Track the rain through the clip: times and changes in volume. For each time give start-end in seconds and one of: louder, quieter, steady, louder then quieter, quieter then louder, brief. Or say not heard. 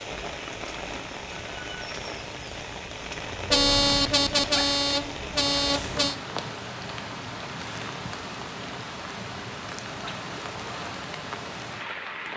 0.0-12.3 steady.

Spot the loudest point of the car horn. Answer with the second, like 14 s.
4 s.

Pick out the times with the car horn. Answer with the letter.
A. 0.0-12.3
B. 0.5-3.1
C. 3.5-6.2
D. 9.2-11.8
C.